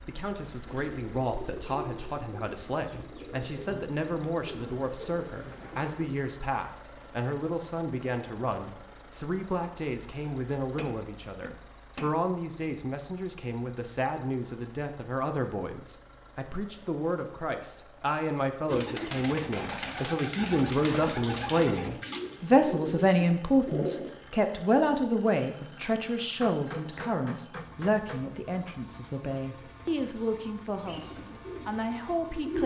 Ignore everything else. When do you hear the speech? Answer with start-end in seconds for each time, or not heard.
0.0-32.6.